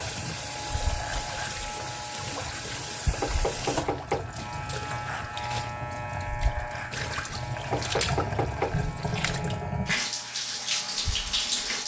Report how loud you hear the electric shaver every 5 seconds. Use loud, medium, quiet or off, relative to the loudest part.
loud, loud, medium.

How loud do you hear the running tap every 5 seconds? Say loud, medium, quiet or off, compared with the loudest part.
medium, loud, loud.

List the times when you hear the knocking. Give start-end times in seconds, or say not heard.
3.2-4.3, 7.7-8.8.